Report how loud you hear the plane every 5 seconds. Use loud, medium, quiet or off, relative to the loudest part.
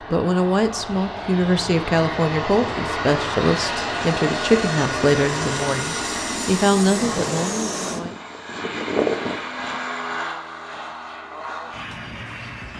loud, loud, medium.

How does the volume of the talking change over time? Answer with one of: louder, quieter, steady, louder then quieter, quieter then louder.
steady.